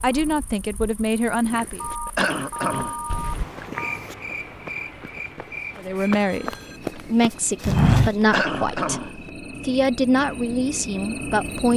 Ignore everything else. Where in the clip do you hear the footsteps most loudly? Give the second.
8 s.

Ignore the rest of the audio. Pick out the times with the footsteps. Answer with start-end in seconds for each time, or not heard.
1.4-8.3.